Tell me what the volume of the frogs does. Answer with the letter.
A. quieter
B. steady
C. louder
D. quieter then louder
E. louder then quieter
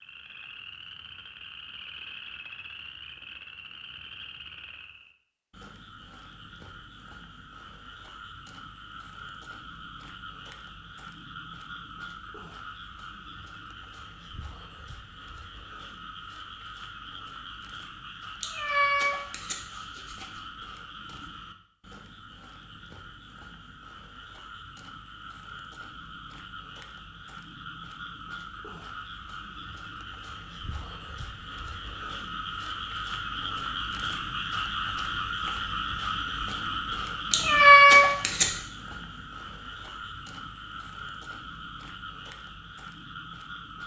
C.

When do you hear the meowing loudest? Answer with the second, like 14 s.
38 s.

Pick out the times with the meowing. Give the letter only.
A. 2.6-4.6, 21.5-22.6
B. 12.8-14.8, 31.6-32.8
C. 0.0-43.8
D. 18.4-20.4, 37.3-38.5
D.